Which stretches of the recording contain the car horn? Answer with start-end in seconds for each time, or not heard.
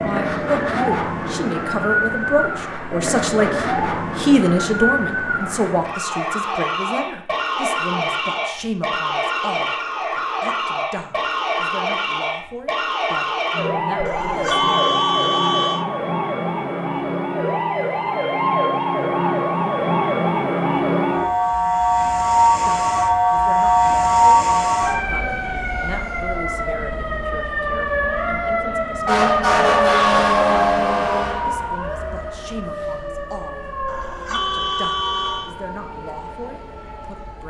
14.0-15.8, 33.8-35.5.